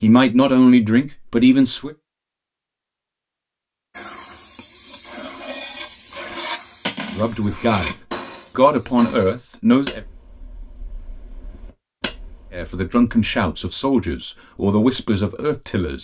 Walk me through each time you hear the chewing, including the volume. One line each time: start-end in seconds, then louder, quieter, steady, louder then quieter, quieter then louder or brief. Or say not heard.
not heard.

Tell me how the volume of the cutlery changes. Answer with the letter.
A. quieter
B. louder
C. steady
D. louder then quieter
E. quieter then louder
D.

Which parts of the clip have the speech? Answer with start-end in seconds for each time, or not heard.
0.0-1.9, 7.2-8.0, 8.6-10.0, 12.5-15.9.